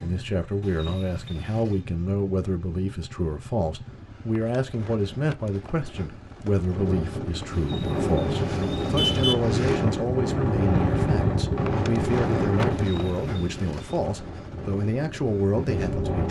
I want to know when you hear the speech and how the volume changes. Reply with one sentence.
The speech can be heard from 0.0 to 16.2 s, at a steady volume.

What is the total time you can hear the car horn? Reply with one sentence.
You can hear the car horn for 4 seconds altogether.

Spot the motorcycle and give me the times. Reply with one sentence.
You can hear the motorcycle from 0.0 to 16.2 s.